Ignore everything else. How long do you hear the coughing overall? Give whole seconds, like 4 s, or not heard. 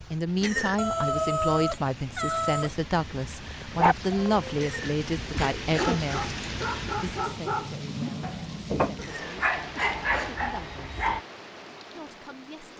4 s.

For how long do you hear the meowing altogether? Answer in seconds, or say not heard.
2 s.